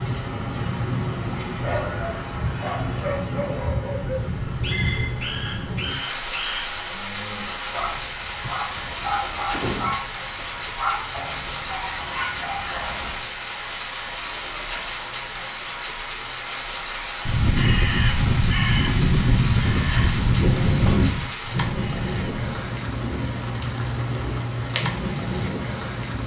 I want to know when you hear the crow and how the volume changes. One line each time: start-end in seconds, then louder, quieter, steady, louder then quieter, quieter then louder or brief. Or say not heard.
17.2-22.4 quieter.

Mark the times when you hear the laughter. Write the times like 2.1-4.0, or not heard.
not heard.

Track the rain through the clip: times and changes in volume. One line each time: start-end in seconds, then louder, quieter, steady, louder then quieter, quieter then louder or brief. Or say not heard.
0.0-26.2 steady.